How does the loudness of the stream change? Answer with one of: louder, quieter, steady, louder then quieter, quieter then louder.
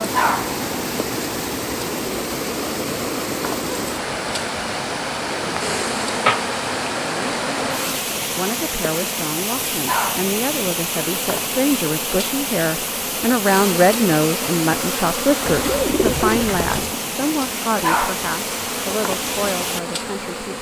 steady.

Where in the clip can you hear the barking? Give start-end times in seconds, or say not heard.
0.1-0.6, 9.8-10.3, 17.8-18.2.